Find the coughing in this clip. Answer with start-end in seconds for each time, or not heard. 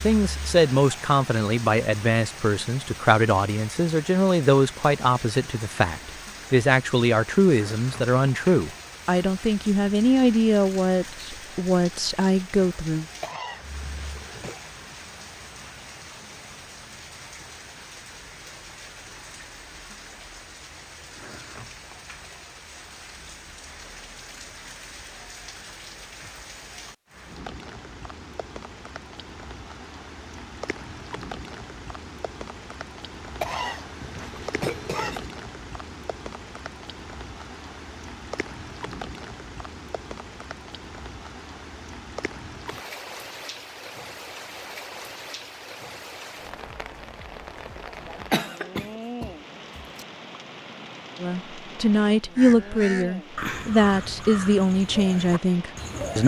13.2-14.6, 33.4-35.3, 48.3-50.0.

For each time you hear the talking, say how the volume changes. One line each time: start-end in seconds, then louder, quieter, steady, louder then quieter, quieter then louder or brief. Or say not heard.
0.0-13.1 steady
51.2-56.2 steady.